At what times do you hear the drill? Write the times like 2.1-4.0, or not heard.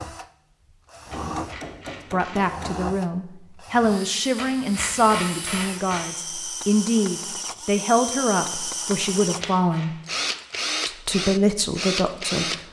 0.0-12.6.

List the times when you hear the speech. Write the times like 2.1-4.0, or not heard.
2.1-9.9, 10.8-12.6.